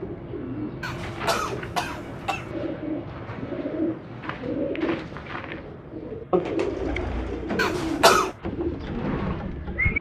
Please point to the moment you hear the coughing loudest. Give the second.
8 s.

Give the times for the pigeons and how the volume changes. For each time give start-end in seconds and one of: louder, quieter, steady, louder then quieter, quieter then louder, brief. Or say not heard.
0.0-9.9 louder.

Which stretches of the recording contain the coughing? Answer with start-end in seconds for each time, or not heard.
0.8-2.5, 7.5-8.3.